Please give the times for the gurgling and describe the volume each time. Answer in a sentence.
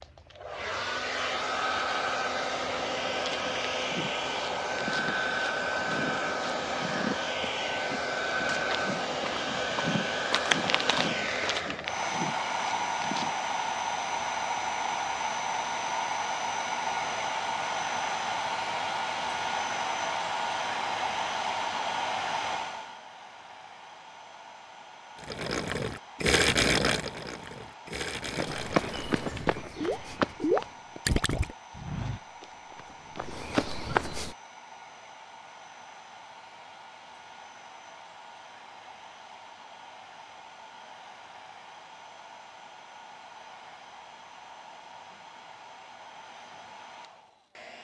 The gurgling can be heard from 25.2 to 31.5 s, getting quieter then louder.